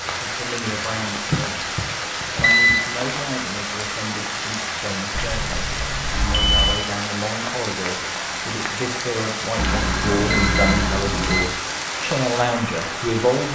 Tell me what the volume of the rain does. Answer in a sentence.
The volume of the rain stays about the same.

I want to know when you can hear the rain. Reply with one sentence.
You can hear the rain from 0.0 to 13.5 s.